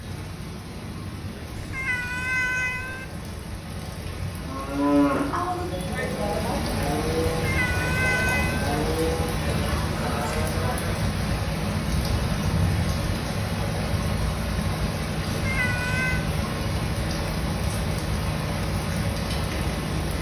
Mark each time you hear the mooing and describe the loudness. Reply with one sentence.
You can hear the mooing from 4.4 to 11.2 s, getting quieter.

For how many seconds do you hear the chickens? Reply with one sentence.
You can't hear the chickens here.